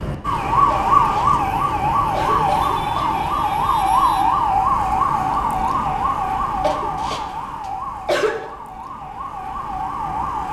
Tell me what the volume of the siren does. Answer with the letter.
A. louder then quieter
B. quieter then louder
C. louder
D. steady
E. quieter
E.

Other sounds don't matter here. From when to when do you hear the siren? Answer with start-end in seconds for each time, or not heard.
0.0-10.4.